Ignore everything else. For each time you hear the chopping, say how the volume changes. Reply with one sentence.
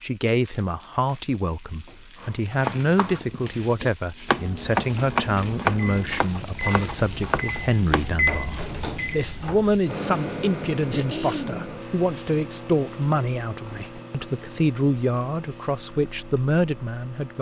You can hear the chopping from 2.2 to 8.2 s, getting louder then quieter.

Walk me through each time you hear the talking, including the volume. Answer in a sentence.
You can hear the talking from 0.0 to 17.3 s, at a steady volume.